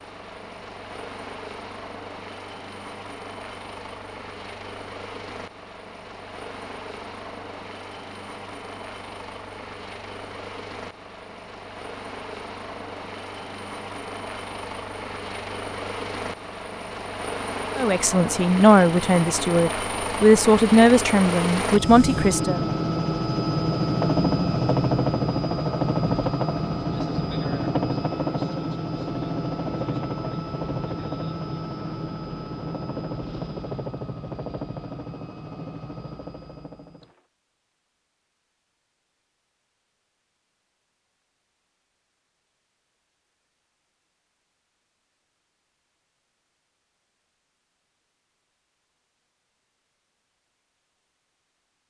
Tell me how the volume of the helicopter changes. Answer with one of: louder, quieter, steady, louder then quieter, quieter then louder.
louder then quieter.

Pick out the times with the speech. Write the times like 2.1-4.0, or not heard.
17.8-22.6.